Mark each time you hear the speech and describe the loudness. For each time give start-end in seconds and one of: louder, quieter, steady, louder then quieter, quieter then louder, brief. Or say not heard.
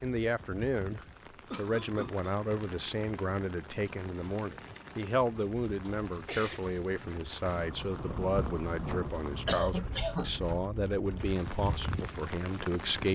0.0-13.1 steady.